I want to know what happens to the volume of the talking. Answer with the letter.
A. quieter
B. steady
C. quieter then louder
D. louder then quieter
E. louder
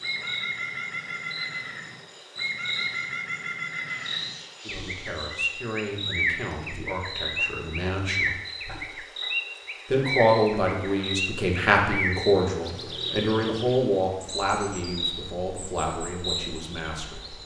D.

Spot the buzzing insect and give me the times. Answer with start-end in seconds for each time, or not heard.
0.0-17.4.